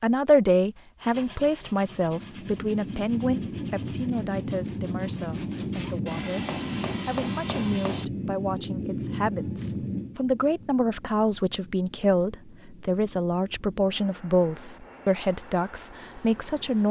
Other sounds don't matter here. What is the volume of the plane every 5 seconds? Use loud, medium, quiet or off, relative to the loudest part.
loud, loud, quiet, quiet.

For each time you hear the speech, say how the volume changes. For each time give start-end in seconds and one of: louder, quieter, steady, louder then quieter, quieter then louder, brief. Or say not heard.
0.0-16.8 quieter then louder.